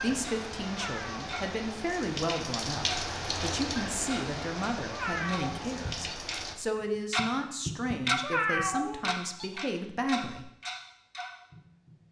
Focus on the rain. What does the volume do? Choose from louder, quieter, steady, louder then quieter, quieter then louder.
louder then quieter.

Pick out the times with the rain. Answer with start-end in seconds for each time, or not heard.
0.0-6.5.